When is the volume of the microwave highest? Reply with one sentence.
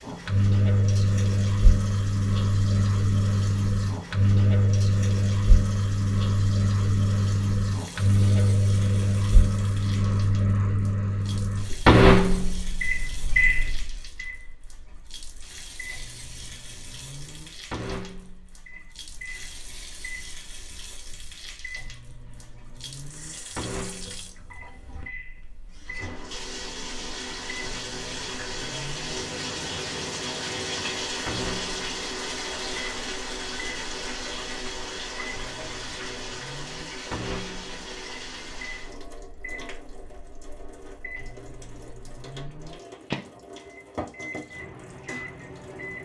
The volume of the microwave peaks at 12 seconds.